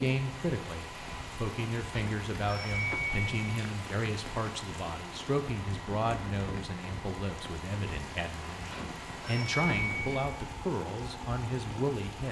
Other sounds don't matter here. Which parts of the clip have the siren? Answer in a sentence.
You can't hear the siren here.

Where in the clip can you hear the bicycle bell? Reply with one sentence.
You can hear the bicycle bell from 1.9 to 3.5 s and from 8.7 to 10.3 s.